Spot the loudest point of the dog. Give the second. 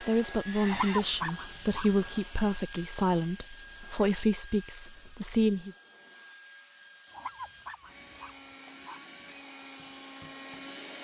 1 s.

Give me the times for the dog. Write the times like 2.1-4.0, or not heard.
0.7-1.9, 7.1-9.0.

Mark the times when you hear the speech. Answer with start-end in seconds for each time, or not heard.
0.0-5.8.